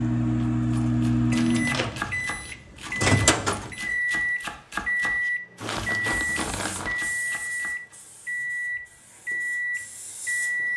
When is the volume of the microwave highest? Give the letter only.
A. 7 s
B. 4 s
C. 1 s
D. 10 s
C.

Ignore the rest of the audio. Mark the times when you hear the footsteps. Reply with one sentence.
The footsteps can't be heard in this clip.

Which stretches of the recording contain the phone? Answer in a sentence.
You can't hear the phone here.